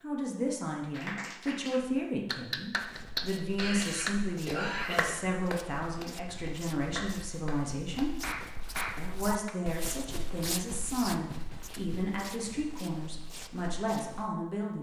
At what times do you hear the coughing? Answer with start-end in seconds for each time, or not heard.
3.5-5.2.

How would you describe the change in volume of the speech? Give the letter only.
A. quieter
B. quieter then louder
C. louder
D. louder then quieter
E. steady
E.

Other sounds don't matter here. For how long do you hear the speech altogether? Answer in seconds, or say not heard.
14 s.